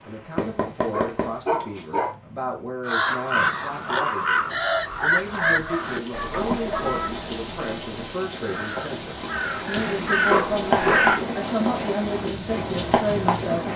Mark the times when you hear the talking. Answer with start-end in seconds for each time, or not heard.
0.0-13.7.